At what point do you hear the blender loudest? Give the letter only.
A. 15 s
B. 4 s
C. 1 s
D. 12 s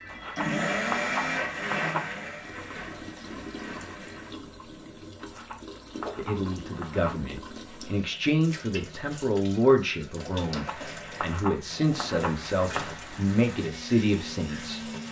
C.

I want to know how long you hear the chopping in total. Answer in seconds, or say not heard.
7 s.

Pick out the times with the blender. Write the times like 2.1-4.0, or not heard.
0.0-4.3, 10.6-15.0.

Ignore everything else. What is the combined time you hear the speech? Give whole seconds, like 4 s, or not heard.
9 s.